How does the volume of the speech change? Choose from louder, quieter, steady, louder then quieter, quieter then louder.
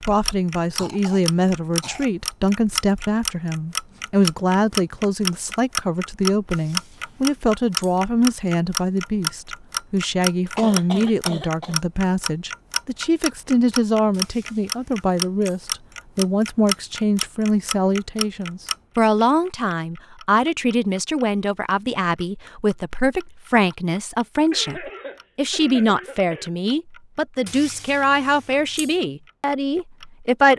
steady.